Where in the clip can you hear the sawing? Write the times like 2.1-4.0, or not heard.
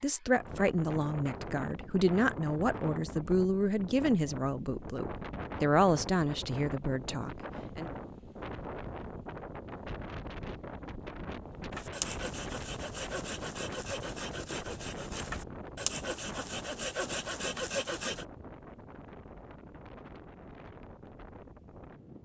11.8-18.2.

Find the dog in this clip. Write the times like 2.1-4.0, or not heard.
not heard.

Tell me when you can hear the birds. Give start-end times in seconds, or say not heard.
not heard.